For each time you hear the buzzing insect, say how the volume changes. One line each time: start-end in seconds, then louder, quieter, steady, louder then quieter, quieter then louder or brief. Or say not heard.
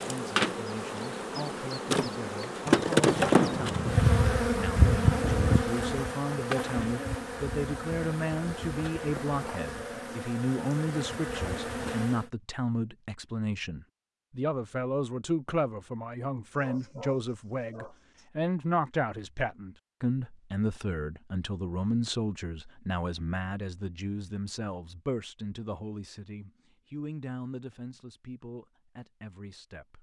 0.0-12.2 louder then quieter.